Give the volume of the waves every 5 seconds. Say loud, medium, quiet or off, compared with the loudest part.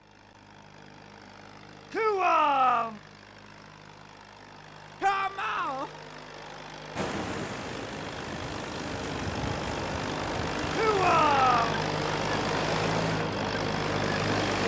off, loud, loud.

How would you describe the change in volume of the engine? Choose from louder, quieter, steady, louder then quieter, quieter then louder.
louder.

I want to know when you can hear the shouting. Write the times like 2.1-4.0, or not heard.
1.9-3.0, 5.0-5.9, 10.7-11.8.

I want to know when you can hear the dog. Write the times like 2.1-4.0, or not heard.
not heard.